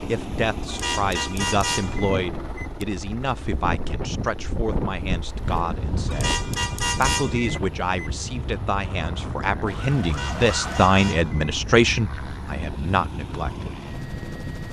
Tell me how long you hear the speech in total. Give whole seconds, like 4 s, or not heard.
14 s.